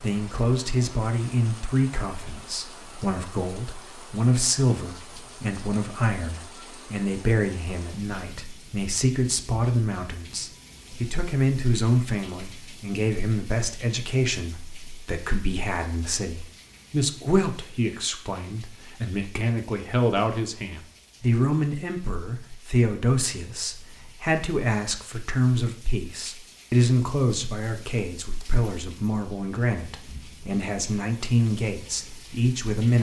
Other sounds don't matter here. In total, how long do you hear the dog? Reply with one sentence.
You can't hear the dog here.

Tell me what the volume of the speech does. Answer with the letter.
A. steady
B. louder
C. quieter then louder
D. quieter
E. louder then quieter
A.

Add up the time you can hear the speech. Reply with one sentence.
The speech can be heard for 33 seconds in total.